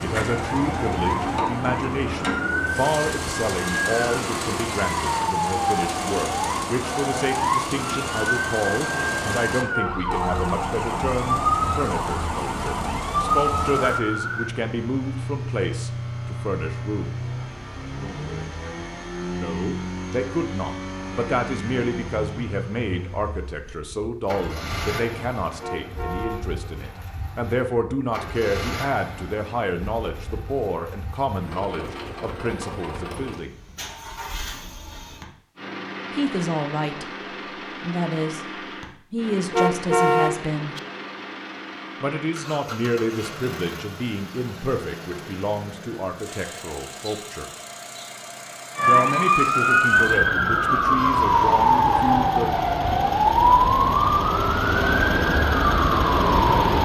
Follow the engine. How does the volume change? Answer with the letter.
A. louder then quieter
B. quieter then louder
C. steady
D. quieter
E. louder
D.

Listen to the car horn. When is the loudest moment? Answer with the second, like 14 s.
40 s.